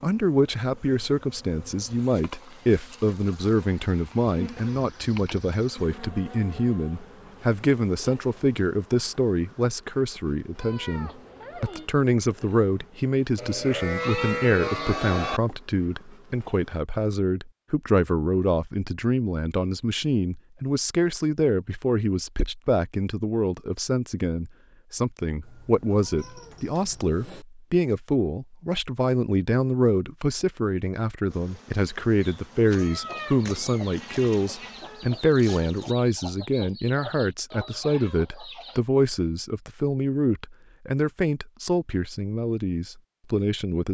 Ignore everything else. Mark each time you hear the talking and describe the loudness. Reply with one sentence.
You can hear the talking from 0.0 to 43.8 s, at a steady volume.